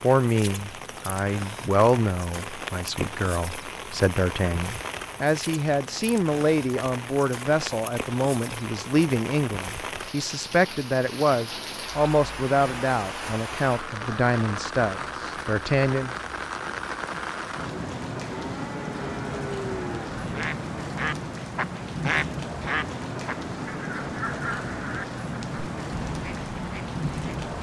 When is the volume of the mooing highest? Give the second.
20 s.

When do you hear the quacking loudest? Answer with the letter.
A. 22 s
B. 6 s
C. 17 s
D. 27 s
A.